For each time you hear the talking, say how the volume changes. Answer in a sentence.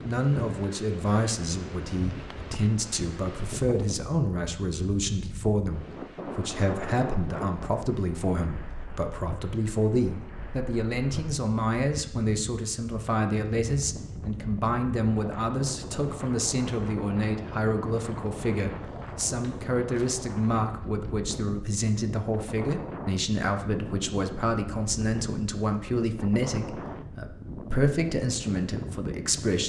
The talking can be heard from 0.1 to 29.6 s, at a steady volume.